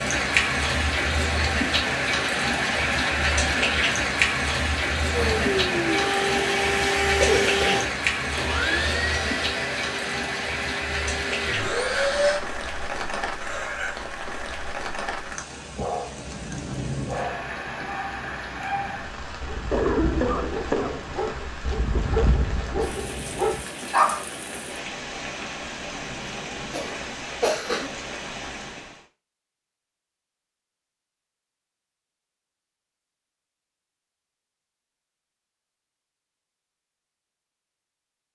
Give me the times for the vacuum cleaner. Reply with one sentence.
You can hear the vacuum cleaner from 5.1 to 12.4 s.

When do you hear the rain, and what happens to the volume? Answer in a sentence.
You can hear the rain from 0.0 to 29.1 s, getting quieter.